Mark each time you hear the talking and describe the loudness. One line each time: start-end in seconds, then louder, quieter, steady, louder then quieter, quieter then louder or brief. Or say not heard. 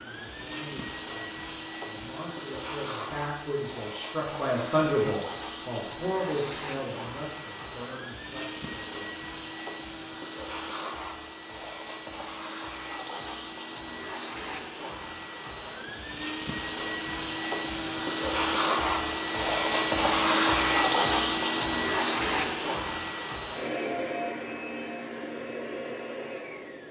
0.0-9.2 louder then quieter.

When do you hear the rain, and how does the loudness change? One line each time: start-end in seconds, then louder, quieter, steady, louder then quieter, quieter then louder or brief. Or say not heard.
not heard.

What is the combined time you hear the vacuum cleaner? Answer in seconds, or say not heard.
27 s.